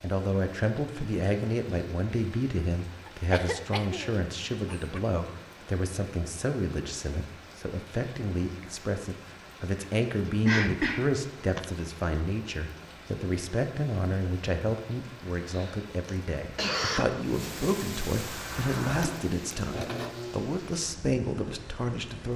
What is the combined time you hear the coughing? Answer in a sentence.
The coughing can be heard for 5 seconds in total.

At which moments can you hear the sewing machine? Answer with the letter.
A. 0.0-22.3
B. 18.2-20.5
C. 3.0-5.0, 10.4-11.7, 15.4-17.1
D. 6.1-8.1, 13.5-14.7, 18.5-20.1
B.